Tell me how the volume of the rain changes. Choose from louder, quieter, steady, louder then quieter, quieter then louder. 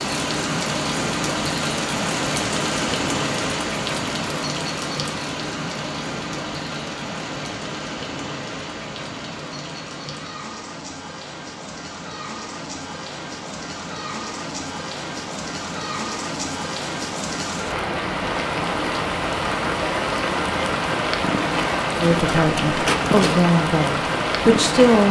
quieter then louder.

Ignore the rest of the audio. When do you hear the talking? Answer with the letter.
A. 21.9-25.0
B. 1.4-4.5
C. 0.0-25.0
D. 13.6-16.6
A.